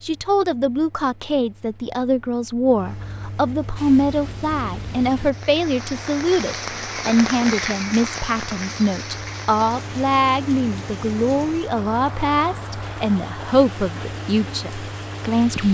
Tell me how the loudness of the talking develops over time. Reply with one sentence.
The loudness of the talking stays about the same.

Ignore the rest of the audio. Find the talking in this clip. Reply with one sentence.
You can hear the talking from 0.0 to 15.6 s.